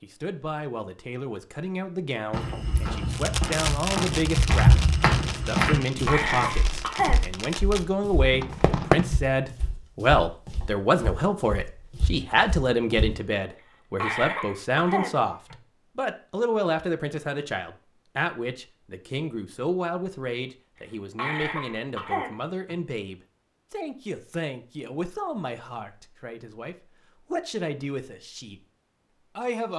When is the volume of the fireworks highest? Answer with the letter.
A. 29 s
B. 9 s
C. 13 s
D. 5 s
B.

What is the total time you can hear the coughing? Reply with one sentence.
You can hear the coughing for 5 seconds altogether.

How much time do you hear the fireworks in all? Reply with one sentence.
The fireworks can be heard for 6 seconds in total.